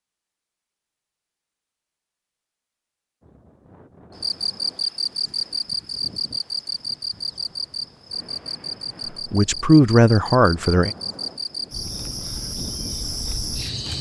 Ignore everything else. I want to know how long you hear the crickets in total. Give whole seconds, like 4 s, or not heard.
10 s.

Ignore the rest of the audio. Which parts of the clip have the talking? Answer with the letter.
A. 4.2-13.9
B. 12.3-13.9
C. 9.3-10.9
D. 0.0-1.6
C.